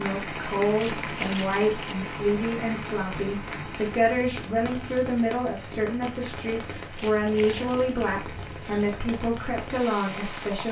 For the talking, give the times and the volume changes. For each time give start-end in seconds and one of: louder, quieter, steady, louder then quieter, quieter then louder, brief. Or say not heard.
0.0-10.6 steady.